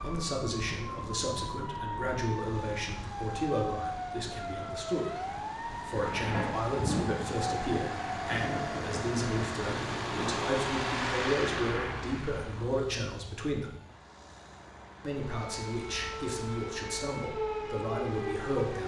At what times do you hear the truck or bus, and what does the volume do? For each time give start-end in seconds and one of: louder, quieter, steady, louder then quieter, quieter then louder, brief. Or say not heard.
0.0-18.8 louder then quieter.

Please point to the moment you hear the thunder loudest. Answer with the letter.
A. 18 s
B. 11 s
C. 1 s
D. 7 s
D.